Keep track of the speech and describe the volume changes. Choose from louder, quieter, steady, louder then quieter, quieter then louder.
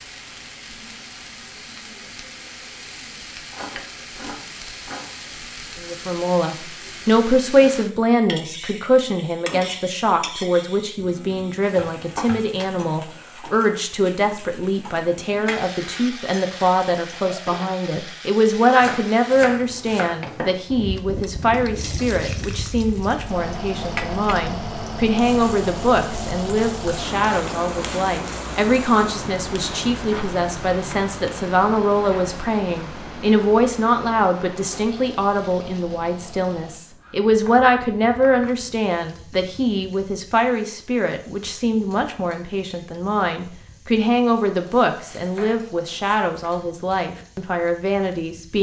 steady.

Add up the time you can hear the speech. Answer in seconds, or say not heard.
43 s.